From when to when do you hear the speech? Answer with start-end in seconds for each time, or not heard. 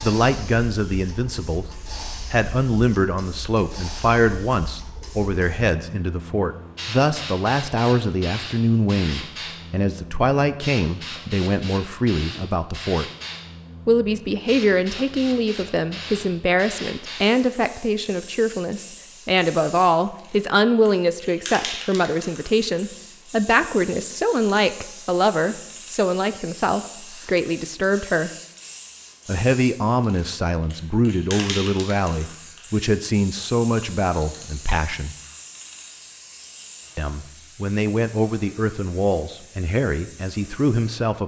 0.0-13.1, 13.8-28.3, 29.2-35.1, 37.0-41.2.